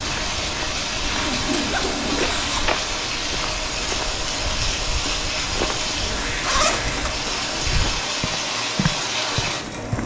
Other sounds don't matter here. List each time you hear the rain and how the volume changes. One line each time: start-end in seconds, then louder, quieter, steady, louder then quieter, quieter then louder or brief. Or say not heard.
0.0-10.0 steady.